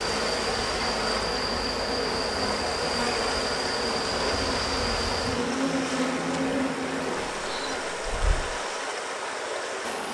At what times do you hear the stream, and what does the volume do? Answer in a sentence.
You can hear the stream from 0.0 to 10.0 s, at a steady volume.